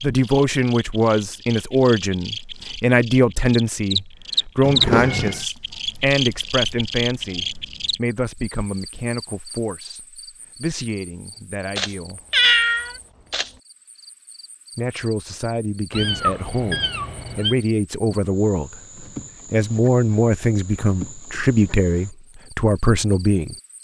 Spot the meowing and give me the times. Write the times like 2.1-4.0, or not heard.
4.6-5.4, 11.8-13.5, 15.9-17.6.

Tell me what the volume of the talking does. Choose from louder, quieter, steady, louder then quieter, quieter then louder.
quieter then louder.